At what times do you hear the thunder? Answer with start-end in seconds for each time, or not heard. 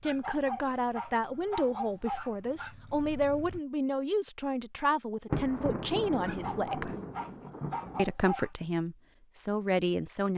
5.3-8.1.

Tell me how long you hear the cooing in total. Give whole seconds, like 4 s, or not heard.
not heard.